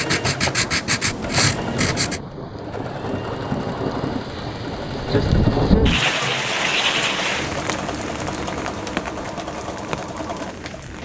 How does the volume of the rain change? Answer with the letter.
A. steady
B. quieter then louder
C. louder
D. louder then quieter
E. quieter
D.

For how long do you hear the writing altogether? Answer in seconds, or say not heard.
2 s.